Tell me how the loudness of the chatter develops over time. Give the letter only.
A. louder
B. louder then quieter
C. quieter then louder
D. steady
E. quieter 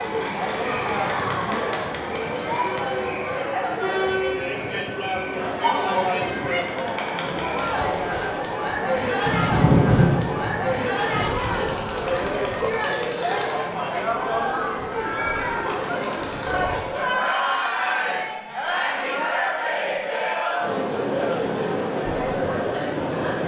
D.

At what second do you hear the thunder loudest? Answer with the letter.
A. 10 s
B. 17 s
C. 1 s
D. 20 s
A.